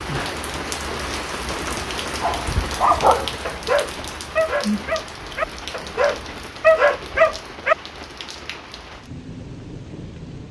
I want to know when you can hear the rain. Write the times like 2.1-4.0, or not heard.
0.0-10.4.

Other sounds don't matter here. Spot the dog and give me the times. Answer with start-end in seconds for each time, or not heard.
2.2-7.8.